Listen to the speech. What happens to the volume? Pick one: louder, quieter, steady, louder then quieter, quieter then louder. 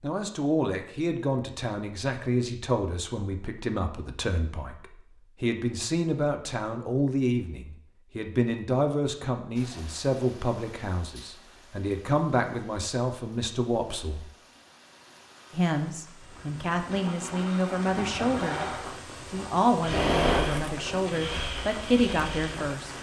steady.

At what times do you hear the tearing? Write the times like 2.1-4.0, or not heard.
not heard.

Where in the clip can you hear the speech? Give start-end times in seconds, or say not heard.
0.0-14.3, 15.5-18.6, 19.3-22.9.